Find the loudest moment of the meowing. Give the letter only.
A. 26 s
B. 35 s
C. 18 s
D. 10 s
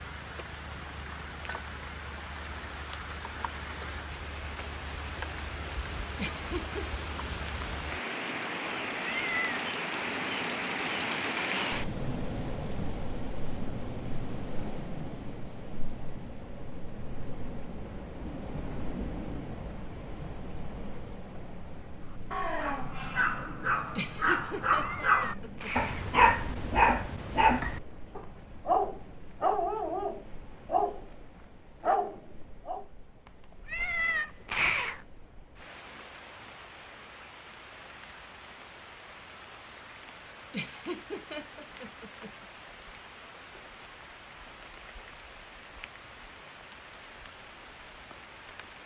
B.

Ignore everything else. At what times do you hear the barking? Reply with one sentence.
The barking can be heard from 22.3 to 31.0 s and from 31.8 to 32.9 s.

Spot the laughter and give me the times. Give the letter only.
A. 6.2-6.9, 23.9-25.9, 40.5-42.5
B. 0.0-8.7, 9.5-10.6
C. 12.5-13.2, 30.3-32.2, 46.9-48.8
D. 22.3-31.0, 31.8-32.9
A.